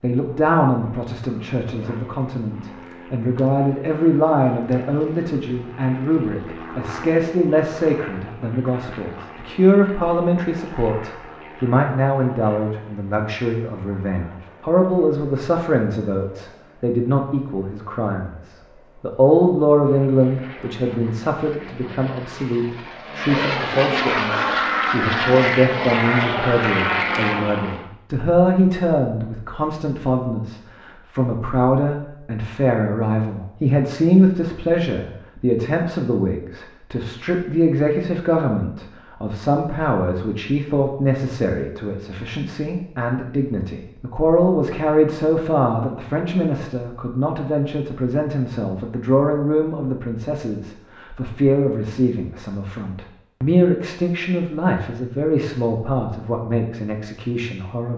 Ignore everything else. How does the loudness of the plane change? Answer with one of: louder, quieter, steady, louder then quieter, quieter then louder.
quieter then louder.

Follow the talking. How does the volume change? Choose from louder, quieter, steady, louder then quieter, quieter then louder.
steady.